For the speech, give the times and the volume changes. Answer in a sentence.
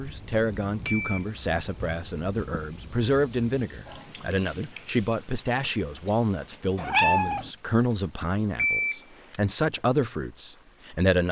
You can hear the speech from 0.0 to 11.2 s, at a steady volume.